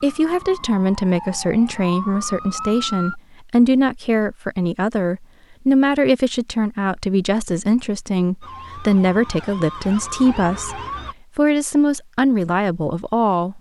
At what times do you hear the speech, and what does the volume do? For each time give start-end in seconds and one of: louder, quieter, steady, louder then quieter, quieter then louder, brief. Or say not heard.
0.0-13.5 steady.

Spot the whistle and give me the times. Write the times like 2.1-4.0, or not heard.
not heard.